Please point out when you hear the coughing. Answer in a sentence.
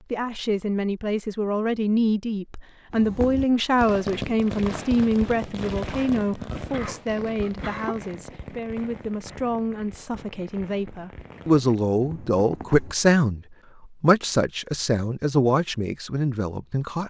The coughing can be heard from 6.5 to 8.0 s.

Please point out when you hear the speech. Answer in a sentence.
The speech can be heard from 0.1 to 17.0 s.